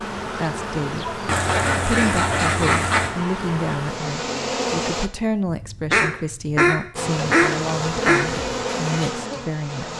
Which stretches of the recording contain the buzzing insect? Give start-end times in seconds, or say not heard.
0.0-5.1, 7.0-9.9.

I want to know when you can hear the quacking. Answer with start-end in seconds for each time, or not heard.
1.2-3.1, 5.5-8.2.